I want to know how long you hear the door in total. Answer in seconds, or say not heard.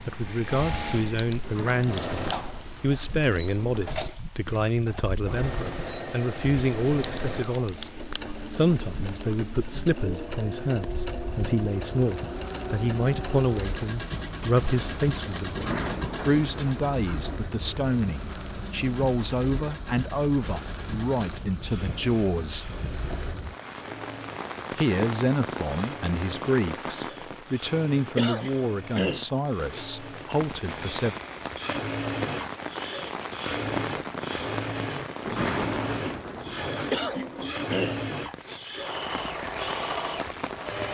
7 s.